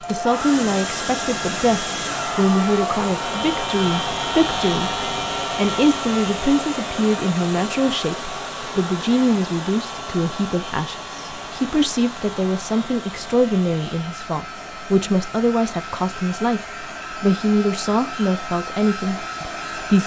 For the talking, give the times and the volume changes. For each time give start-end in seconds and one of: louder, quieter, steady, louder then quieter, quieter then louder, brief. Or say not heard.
0.0-20.0 steady.